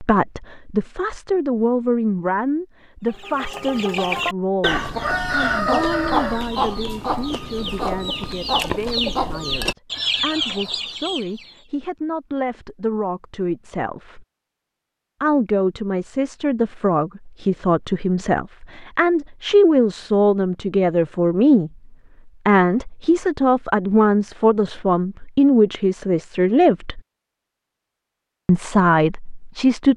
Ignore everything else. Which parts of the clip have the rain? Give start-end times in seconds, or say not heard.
not heard.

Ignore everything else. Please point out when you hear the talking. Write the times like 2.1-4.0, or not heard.
0.0-14.2, 15.2-21.7, 22.4-27.0, 28.4-29.9.